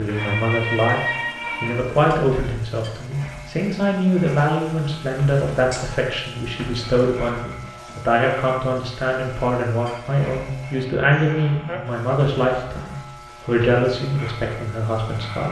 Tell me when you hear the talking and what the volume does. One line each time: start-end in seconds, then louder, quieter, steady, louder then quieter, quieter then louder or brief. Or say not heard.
0.0-15.4 steady.